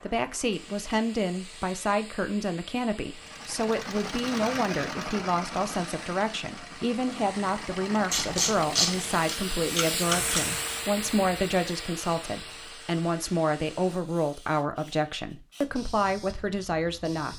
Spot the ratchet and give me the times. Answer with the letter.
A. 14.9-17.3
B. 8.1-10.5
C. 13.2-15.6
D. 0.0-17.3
B.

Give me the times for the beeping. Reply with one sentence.
You can't hear the beeping here.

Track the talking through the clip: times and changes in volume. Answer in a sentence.
You can hear the talking from 0.0 to 17.3 s, at a steady volume.